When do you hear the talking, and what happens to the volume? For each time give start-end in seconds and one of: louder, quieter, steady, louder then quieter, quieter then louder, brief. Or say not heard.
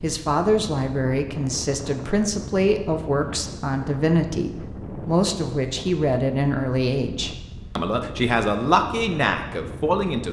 0.0-10.2 steady.